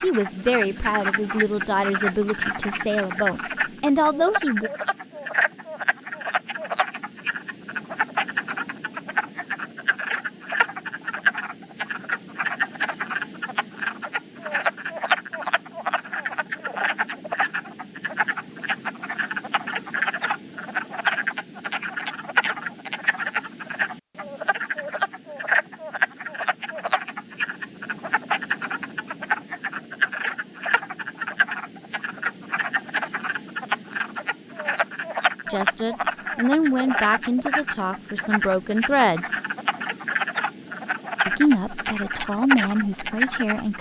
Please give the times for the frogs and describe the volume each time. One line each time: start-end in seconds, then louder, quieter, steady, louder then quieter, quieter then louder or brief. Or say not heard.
0.0-43.7 steady.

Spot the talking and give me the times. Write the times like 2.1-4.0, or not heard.
0.0-4.7, 35.5-39.4, 41.2-43.7.